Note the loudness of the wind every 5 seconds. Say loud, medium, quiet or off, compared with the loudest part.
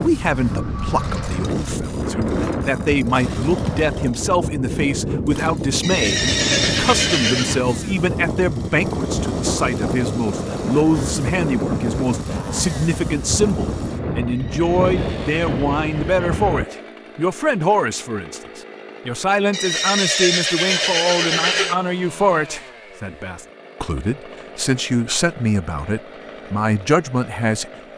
loud, loud, loud, loud, off, off.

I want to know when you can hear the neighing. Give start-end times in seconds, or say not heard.
5.8-7.6, 14.2-16.9, 19.5-21.8.